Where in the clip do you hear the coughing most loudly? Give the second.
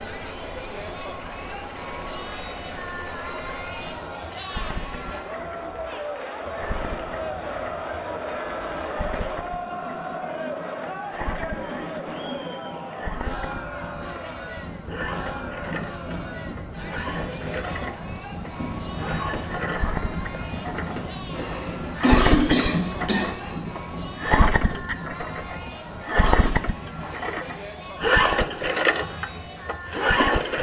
22 s.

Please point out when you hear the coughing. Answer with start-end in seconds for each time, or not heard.
21.3-23.6.